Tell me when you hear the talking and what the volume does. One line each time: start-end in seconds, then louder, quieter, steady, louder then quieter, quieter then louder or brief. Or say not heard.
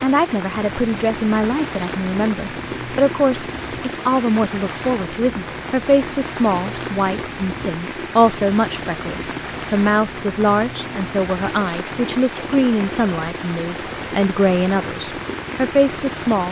0.0-16.4 steady.